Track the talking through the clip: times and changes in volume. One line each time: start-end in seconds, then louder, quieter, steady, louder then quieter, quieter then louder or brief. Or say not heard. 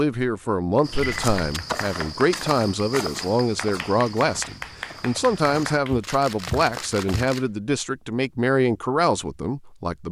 0.0-10.0 steady.